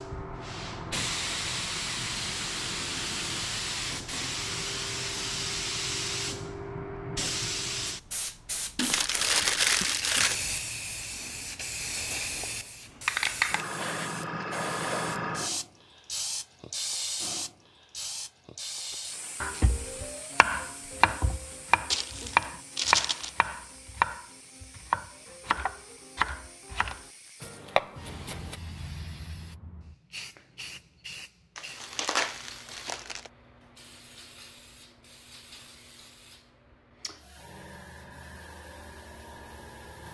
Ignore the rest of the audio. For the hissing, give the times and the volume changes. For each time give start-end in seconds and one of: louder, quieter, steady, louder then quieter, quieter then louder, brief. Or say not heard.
0.0-40.1 quieter.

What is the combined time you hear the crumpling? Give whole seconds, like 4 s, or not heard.
5 s.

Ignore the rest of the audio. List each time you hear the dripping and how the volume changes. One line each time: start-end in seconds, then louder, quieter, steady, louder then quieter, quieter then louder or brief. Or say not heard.
not heard.